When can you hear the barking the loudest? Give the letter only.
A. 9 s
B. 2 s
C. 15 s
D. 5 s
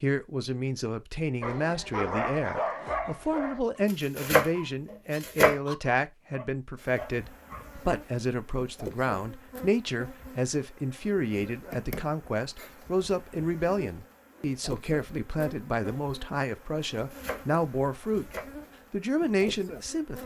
B.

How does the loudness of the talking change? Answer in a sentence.
The volume of the talking stays about the same.